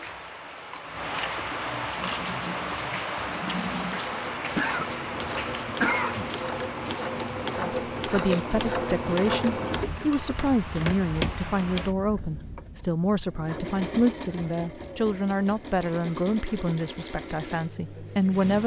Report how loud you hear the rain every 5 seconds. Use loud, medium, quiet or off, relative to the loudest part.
loud, medium, medium, off.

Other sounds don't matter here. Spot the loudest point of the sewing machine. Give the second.
9 s.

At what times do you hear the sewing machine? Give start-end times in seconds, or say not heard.
1.9-18.6.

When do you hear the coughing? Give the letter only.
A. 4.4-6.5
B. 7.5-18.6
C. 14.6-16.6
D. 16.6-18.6
A.